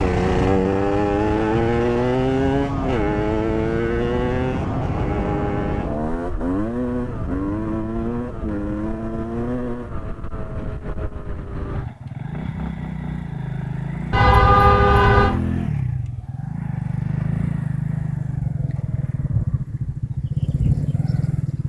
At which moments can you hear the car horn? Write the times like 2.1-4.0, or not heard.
14.1-15.4.